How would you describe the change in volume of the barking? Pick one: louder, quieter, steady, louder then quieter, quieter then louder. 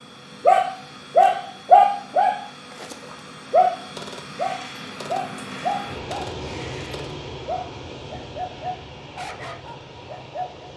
quieter.